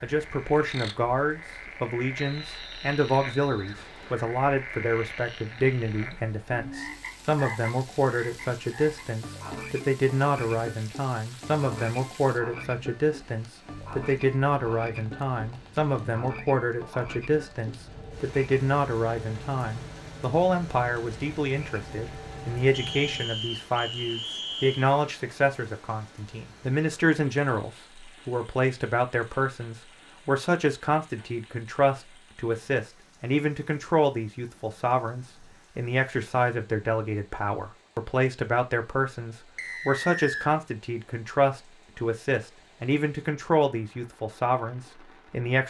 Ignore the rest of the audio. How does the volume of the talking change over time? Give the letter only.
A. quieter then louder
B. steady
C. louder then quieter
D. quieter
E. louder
B.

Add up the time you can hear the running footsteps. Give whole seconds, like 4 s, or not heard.
not heard.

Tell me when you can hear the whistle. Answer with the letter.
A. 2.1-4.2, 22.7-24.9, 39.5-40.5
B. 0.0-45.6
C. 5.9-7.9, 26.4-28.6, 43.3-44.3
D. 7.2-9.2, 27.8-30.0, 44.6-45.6
A.